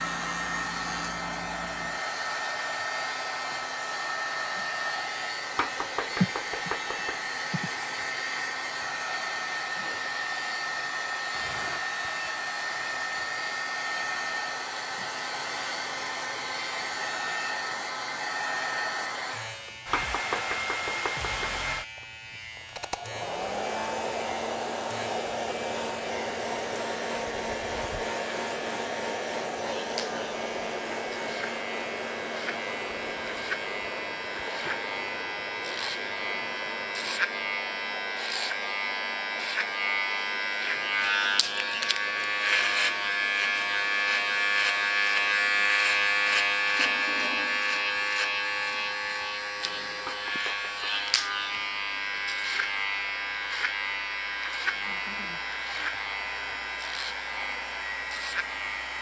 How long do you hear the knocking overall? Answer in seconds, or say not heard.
4 s.